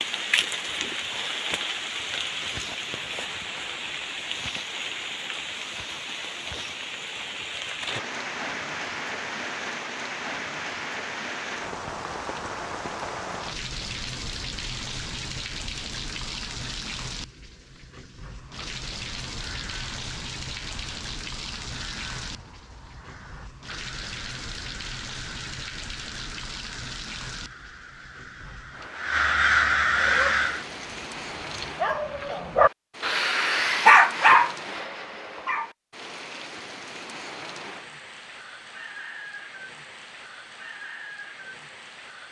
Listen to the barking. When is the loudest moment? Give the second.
34 s.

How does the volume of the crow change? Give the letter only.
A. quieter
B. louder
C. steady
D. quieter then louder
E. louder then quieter
B.